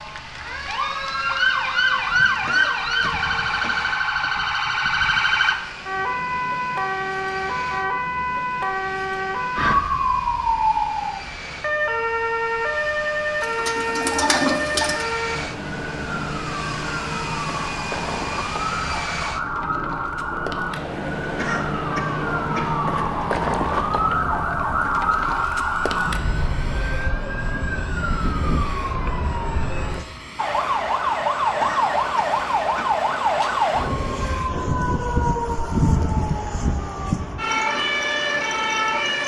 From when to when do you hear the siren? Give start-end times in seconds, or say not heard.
0.0-39.2.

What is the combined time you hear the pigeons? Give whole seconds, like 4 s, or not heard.
2 s.